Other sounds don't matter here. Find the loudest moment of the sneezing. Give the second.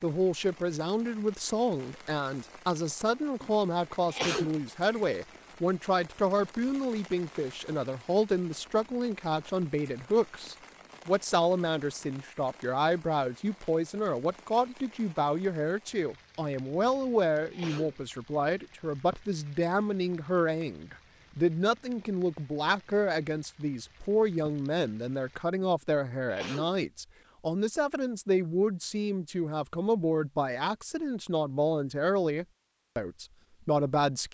4 s.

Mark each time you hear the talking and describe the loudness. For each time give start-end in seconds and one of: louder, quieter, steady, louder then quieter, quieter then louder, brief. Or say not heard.
0.0-34.3 steady.